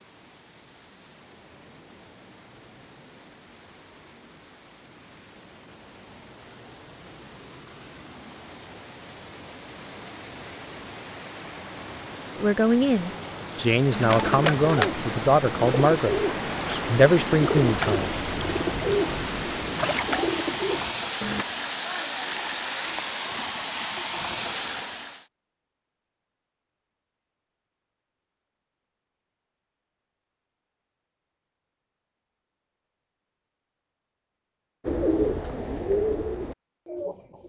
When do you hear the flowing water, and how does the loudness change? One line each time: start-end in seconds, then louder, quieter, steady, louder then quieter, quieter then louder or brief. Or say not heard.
0.0-25.2 louder.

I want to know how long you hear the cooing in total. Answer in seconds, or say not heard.
10 s.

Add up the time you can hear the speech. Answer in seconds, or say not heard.
5 s.